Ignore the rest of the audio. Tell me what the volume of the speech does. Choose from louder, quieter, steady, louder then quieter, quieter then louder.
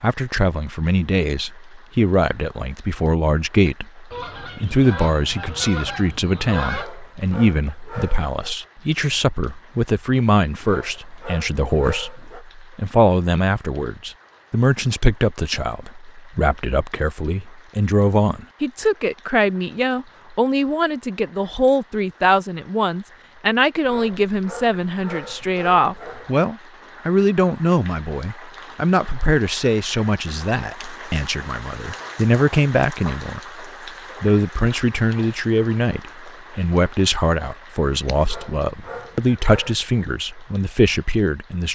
steady.